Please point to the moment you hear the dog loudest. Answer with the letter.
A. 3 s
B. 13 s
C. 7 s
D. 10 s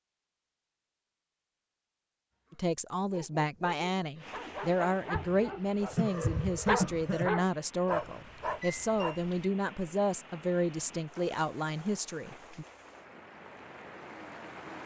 C.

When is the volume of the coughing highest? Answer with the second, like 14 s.
7 s.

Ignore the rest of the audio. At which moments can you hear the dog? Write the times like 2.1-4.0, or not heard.
2.5-9.5.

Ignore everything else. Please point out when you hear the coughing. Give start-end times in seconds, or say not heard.
5.2-7.3.